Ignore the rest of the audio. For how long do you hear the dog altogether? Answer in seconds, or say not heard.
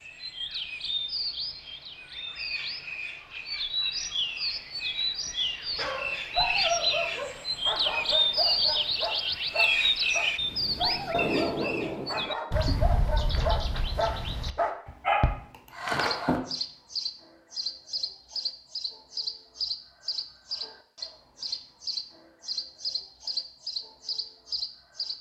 11 s.